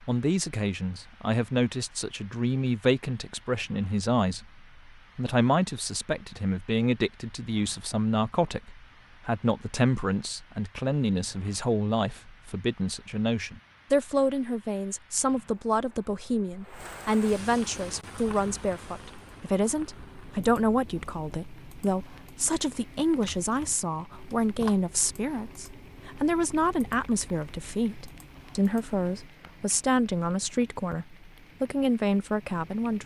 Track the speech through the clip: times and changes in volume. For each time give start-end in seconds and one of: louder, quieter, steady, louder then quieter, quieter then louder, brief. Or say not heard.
0.0-33.0 steady.